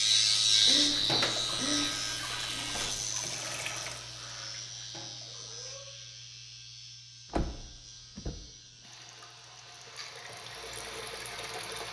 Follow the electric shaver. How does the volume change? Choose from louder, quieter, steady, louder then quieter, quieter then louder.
quieter.